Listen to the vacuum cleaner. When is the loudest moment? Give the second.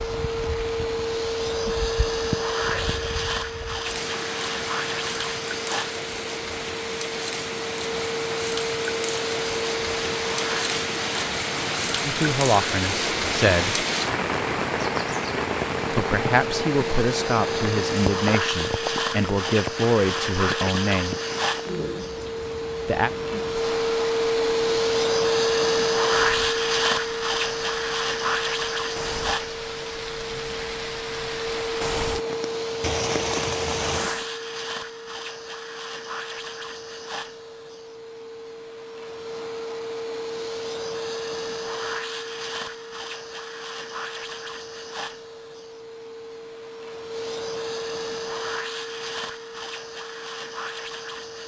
26 s.